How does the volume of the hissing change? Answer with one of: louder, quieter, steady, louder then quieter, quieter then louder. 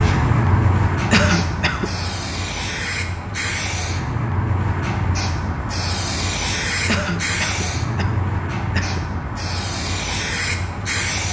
steady.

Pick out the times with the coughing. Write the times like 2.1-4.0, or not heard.
1.1-1.9, 6.8-9.1.